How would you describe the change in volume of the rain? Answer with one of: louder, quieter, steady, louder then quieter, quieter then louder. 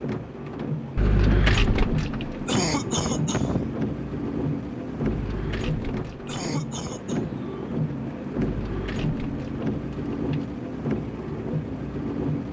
steady.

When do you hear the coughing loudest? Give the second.
3 s.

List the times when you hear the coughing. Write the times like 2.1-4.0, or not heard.
2.5-3.7, 6.2-7.3.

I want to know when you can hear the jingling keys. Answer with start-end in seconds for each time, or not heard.
0.9-2.5, 5.0-6.3, 8.4-10.5.